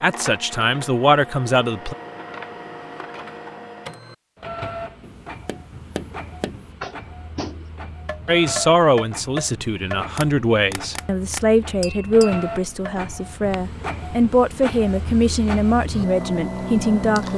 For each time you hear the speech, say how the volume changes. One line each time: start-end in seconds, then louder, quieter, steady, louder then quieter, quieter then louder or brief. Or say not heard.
0.0-1.9 brief
8.2-17.3 steady.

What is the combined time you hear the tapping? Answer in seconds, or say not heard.
9 s.